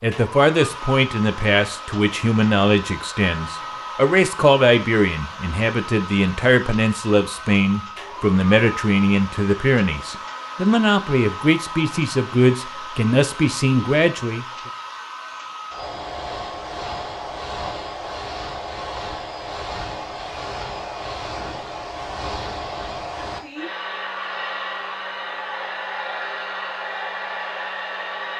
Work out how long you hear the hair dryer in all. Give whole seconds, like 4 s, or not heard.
28 s.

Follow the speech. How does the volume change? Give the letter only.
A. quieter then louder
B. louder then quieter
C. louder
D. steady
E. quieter
D.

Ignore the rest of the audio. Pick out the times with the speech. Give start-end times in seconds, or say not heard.
0.0-14.4.